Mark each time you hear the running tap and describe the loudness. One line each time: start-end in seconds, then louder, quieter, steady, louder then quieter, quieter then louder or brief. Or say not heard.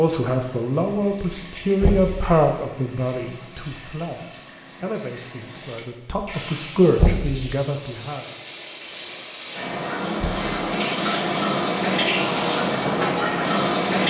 0.1-14.0 louder.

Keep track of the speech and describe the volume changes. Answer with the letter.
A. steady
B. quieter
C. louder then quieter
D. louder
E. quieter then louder
E.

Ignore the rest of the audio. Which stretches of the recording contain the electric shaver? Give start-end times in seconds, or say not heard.
not heard.